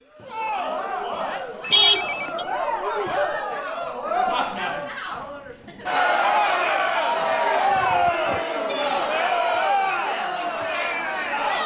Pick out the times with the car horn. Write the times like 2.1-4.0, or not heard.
1.7-2.5.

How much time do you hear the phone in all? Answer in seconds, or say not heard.
2 s.